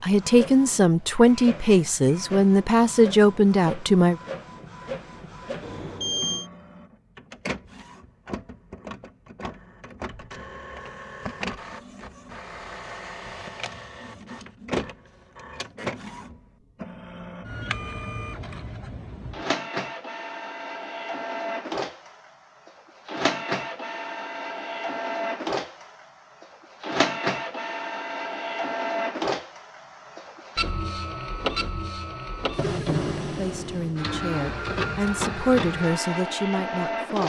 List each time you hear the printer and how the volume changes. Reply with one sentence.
You can hear the printer from 0.0 to 37.2 s, getting louder.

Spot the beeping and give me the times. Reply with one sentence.
The beeping can be heard from 5.6 to 6.5 s.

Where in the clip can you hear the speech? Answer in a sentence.
You can hear the speech from 0.0 to 4.2 s and from 32.8 to 37.2 s.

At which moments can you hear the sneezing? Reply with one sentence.
The sneezing can't be heard in this clip.